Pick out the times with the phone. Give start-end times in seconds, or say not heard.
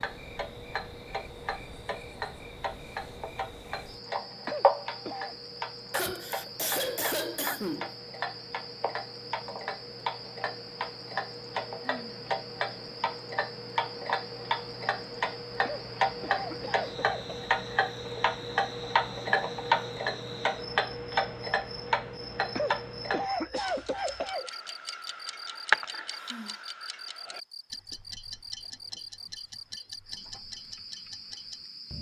not heard.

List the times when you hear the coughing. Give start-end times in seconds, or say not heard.
4.5-5.3, 15.6-17.2, 22.6-24.5.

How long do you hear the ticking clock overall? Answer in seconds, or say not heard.
32 s.